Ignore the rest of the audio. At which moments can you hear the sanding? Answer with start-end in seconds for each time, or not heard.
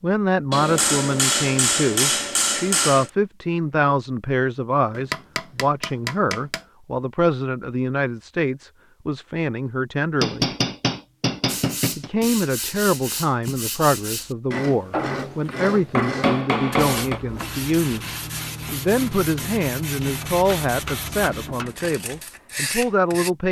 11.4-23.3.